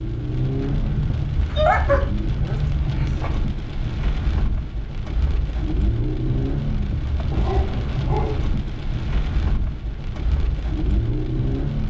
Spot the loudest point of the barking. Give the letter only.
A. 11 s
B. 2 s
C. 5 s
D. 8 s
B.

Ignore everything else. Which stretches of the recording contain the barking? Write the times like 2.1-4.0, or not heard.
1.5-3.3, 7.3-8.4.